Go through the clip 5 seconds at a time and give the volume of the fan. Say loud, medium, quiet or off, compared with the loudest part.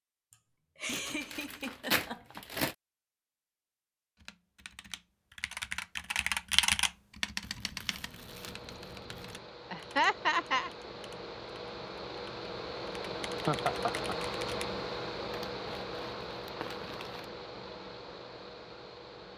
off, medium, loud, loud.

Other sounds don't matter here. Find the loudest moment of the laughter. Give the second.
10 s.